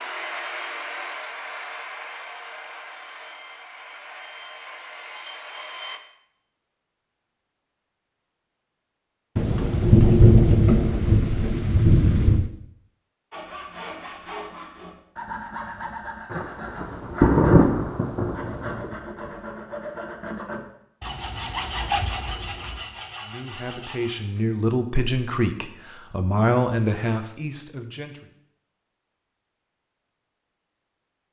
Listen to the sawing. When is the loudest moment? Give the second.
22 s.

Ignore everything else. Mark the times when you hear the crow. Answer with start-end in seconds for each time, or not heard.
not heard.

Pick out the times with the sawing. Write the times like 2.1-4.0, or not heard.
0.0-6.0, 13.3-24.4.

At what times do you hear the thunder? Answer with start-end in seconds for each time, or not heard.
9.3-12.5, 16.3-18.9.